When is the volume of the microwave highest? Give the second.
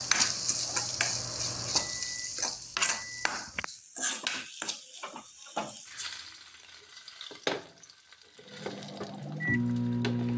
10 s.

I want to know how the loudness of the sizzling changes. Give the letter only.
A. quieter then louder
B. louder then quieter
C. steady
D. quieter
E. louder
D.